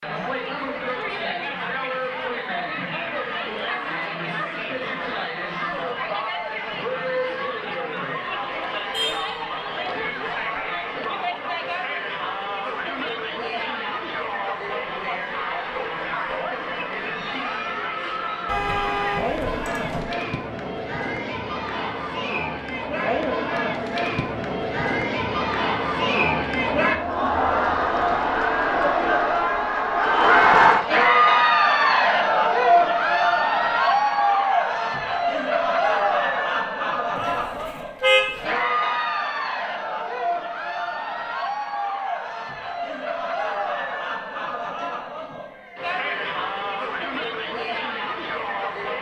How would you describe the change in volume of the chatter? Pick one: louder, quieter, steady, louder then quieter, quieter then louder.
louder then quieter.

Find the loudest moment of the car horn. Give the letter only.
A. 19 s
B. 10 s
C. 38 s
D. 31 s
C.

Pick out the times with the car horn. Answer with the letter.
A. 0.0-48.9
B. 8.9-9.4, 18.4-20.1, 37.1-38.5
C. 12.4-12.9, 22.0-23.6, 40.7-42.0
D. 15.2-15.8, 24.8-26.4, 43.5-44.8
B.